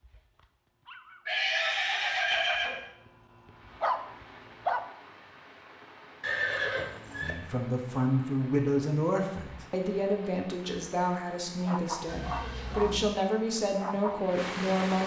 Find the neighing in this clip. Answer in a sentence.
The neighing can be heard from 1.2 to 2.8 s, from 6.2 to 7.3 s and from 12.1 to 13.1 s.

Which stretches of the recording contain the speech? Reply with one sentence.
The speech can be heard from 7.2 to 15.0 s.